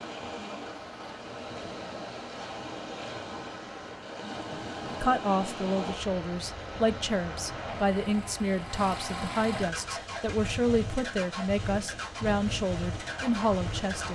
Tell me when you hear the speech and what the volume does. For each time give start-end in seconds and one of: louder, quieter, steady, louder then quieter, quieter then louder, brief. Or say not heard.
4.5-14.1 steady.